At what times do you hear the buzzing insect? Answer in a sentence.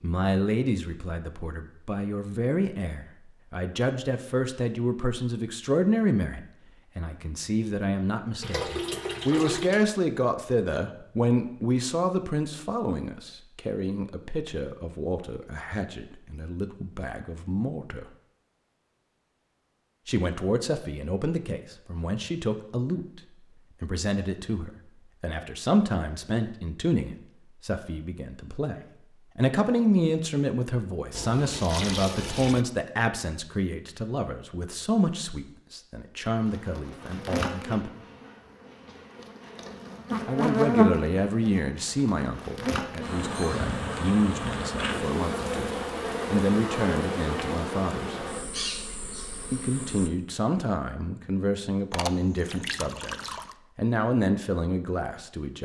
The buzzing insect can be heard from 36.2 to 50.1 s.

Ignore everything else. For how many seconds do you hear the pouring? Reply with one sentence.
The pouring can be heard for 5 seconds in total.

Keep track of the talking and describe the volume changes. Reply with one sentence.
The volume of the talking stays about the same.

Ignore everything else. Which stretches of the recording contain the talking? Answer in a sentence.
You can hear the talking from 0.0 to 18.1 s, from 20.1 to 37.9 s, from 40.2 to 48.2 s and from 49.5 to 55.6 s.